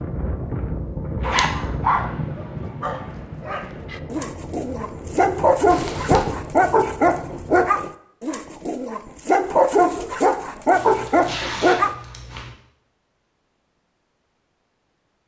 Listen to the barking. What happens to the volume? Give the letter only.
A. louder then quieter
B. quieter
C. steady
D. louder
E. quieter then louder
D.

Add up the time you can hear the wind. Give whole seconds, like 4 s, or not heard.
8 s.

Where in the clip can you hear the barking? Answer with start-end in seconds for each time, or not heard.
1.6-11.9.